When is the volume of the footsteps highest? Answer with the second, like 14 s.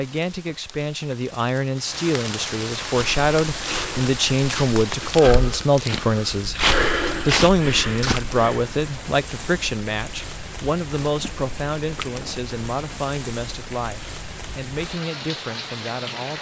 7 s.